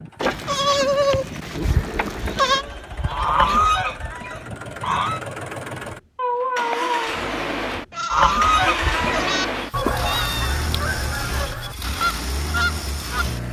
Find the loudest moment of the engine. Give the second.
9 s.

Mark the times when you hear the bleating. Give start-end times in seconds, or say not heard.
0.2-2.6, 7.9-9.4.